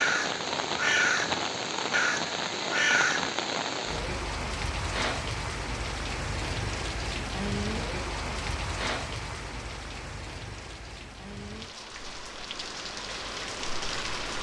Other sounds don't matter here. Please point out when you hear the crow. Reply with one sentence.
The crow can be heard from 0.0 to 3.4 s.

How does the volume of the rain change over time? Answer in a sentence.
The volume of the rain goes down.